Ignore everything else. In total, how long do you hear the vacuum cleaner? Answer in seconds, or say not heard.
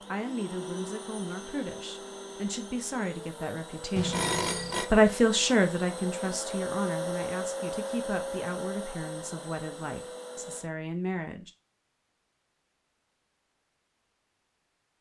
11 s.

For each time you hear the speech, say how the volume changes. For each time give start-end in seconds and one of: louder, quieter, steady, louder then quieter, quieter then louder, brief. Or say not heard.
0.1-11.5 louder then quieter.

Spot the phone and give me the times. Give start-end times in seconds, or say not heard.
4.0-4.9.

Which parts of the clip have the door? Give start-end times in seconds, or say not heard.
not heard.